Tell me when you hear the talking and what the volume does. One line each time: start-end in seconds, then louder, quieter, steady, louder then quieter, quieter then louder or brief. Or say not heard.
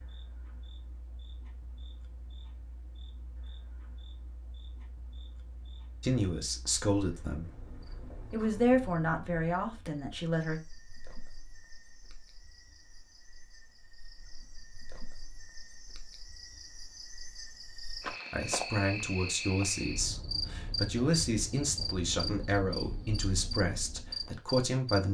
6.0-7.5 brief
8.3-10.6 brief
18.3-25.1 steady.